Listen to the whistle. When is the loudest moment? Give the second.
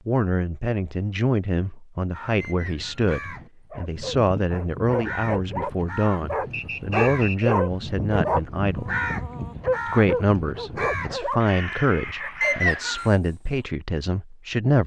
13 s.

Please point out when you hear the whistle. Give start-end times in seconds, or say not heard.
2.4-3.0, 6.5-7.5, 12.4-13.1.